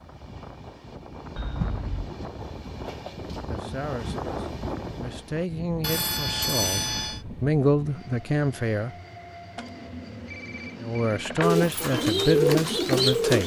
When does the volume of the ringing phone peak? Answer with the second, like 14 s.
7 s.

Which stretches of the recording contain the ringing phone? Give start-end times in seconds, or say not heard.
1.4-2.1, 5.8-7.2, 9.6-11.6.